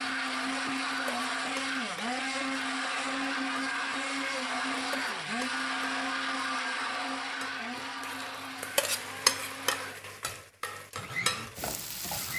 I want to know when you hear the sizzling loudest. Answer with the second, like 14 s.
9 s.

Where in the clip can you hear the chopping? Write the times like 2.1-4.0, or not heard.
not heard.